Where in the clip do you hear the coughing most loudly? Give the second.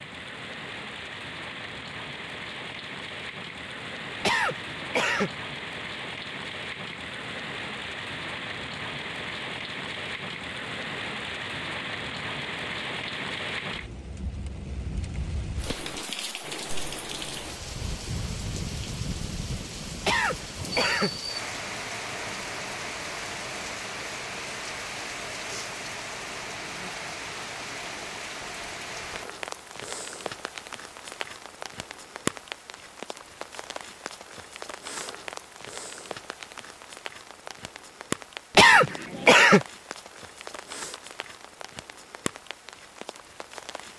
39 s.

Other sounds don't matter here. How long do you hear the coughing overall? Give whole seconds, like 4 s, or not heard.
3 s.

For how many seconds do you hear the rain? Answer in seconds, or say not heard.
44 s.